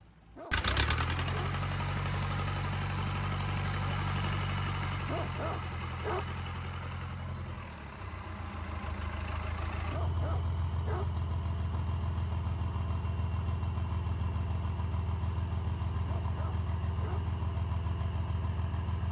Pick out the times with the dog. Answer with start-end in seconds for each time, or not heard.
0.3-1.6, 5.0-6.3, 9.9-11.2, 16.1-17.3.